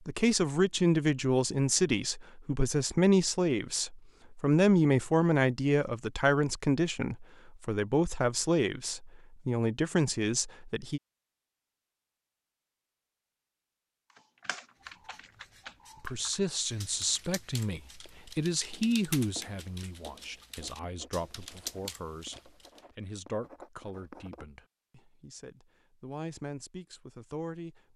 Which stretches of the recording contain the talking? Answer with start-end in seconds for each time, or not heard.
0.1-11.0, 15.9-27.9.